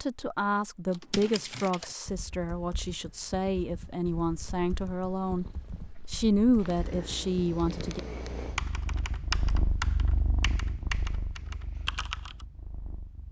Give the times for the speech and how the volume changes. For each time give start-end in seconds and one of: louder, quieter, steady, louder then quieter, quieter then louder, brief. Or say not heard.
0.0-8.0 quieter then louder.